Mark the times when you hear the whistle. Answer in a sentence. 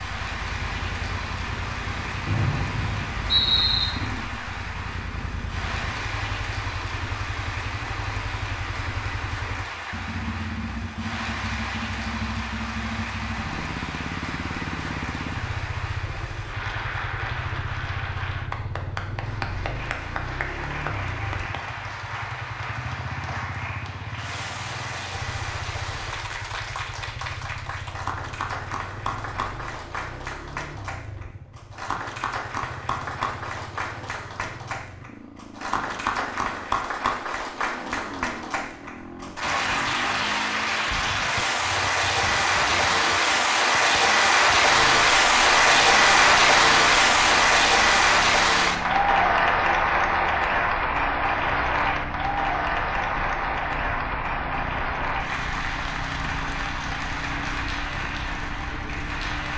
The whistle can be heard from 2.2 to 3.9 s.